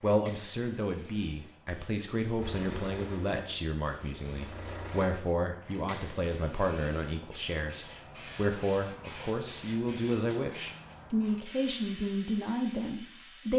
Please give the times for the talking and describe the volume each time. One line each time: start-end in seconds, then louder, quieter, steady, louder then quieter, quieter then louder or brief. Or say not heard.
0.0-13.5 steady.